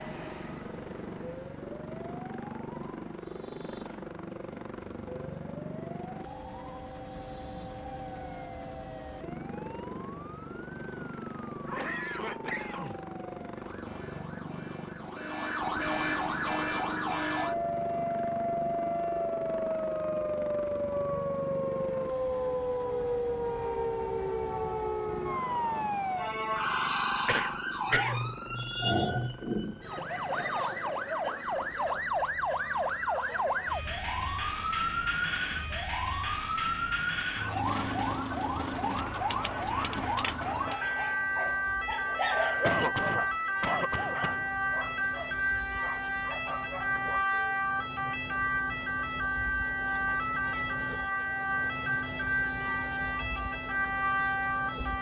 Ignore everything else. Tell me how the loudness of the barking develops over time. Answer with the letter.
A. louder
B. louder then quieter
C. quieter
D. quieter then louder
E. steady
B.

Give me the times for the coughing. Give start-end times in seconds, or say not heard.
11.4-13.0, 27.2-28.2, 42.6-44.5.